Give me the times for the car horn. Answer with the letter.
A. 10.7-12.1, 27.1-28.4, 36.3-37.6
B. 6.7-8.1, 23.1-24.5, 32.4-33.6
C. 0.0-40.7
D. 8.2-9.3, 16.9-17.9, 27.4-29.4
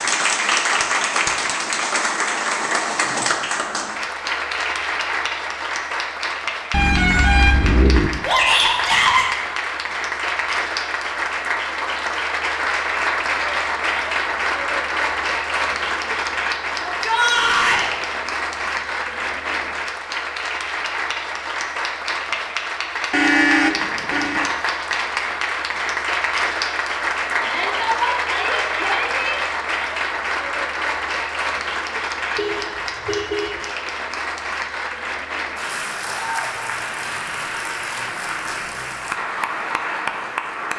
B.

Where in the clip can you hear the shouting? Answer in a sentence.
The shouting can be heard from 8.2 to 9.3 s, from 16.9 to 17.9 s and from 27.4 to 29.4 s.